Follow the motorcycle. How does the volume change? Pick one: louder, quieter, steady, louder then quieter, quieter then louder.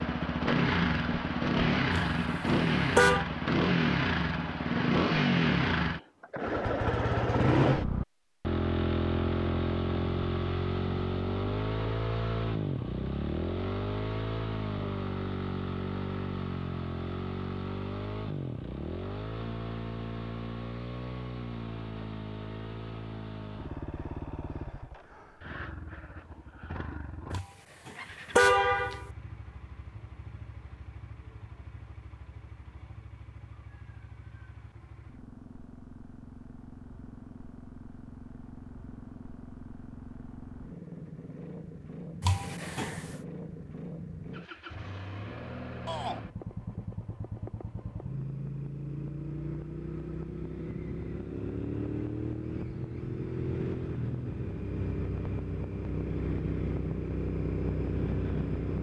quieter then louder.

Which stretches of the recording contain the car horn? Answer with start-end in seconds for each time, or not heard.
1.9-3.2, 27.3-29.1, 42.2-43.2.